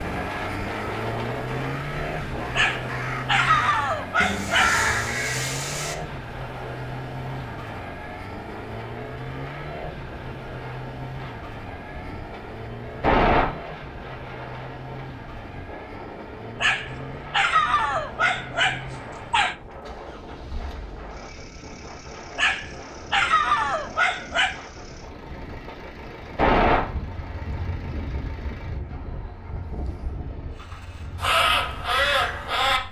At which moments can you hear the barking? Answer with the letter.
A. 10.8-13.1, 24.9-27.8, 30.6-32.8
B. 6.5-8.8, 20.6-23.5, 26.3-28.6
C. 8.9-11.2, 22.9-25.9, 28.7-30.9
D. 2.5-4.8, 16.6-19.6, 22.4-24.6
D.